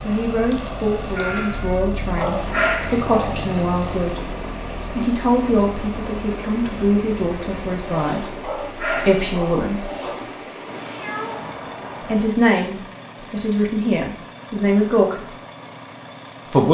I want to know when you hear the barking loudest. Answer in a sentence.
The volume of the barking peaks at 3 seconds.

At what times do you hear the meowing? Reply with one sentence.
You can hear the meowing from 1.1 to 1.9 s and from 10.8 to 11.6 s.